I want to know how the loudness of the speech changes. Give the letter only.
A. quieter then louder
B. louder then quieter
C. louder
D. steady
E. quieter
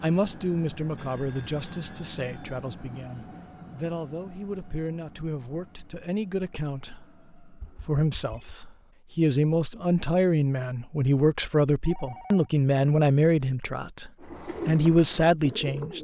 C.